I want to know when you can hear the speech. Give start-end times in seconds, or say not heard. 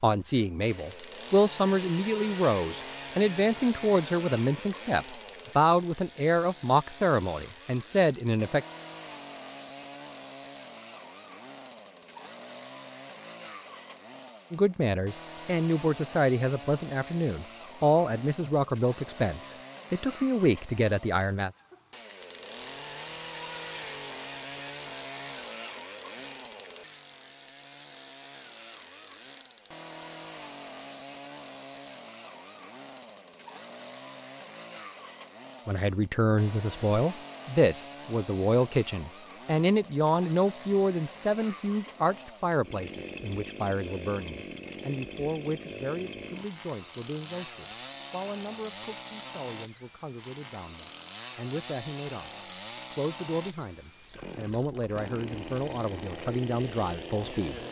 0.0-8.7, 14.5-21.5, 35.6-52.3, 52.9-57.6.